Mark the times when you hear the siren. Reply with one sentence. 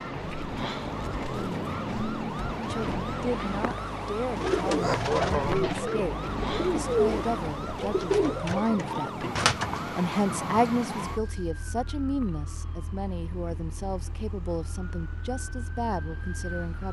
You can hear the siren from 0.0 to 16.8 s.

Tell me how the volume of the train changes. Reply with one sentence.
The loudness of the train stays about the same.